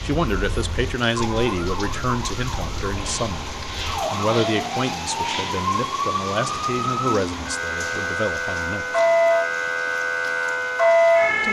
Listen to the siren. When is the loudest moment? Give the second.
11 s.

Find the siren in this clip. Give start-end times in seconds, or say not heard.
0.0-11.4.